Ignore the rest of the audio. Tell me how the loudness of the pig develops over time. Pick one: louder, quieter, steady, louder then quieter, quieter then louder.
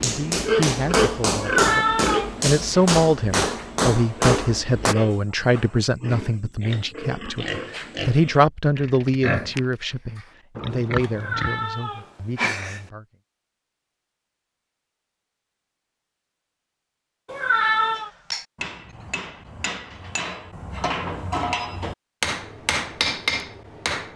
quieter then louder.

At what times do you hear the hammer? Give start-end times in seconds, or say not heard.
0.0-5.0, 17.9-24.1.